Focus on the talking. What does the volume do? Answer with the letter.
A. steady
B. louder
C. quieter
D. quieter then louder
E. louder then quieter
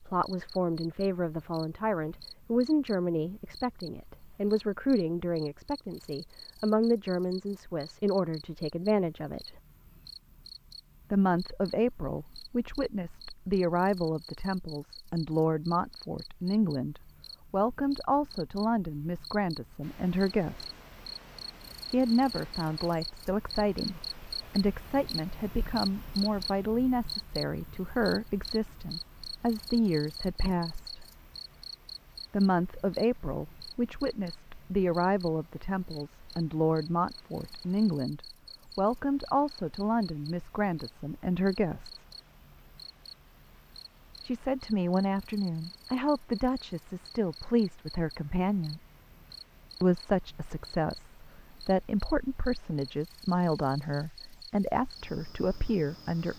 A.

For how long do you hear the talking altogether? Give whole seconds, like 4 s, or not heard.
49 s.